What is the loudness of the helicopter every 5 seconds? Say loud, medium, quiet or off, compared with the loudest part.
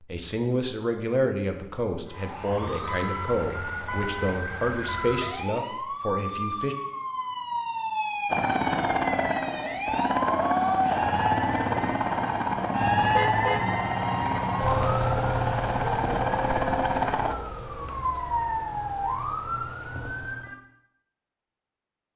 off, loud, loud, loud, off.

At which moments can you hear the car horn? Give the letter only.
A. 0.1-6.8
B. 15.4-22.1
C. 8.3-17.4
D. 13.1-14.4
D.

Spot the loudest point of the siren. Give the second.
13 s.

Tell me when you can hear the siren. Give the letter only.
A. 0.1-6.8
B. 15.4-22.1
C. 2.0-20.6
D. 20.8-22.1
C.